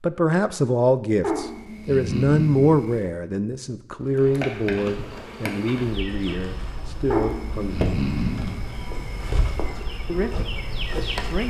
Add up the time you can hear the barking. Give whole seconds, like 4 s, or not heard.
5 s.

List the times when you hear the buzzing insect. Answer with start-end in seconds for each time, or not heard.
4.0-11.4.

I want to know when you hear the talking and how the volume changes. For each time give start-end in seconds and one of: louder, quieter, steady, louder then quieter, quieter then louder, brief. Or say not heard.
0.0-8.0 quieter
10.1-11.4 brief.